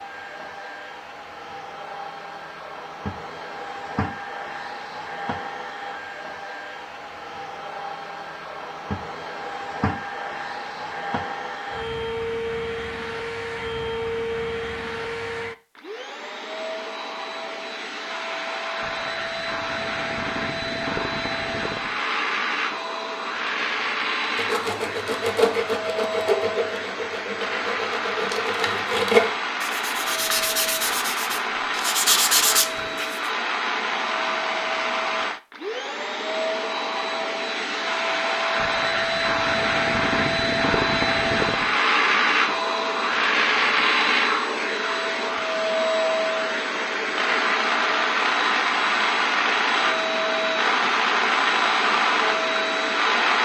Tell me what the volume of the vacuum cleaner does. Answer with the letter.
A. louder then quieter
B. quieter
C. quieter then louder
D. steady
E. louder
E.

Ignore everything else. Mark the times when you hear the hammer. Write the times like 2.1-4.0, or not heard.
not heard.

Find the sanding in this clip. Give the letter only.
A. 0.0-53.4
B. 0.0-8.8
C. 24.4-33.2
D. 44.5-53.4
C.